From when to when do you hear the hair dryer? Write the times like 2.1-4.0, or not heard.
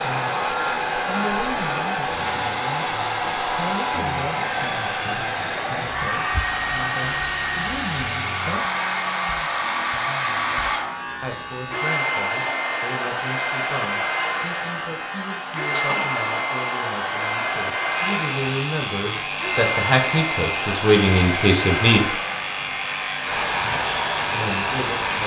0.0-25.2.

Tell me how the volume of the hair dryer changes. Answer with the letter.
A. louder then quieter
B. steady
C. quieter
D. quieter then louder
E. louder
B.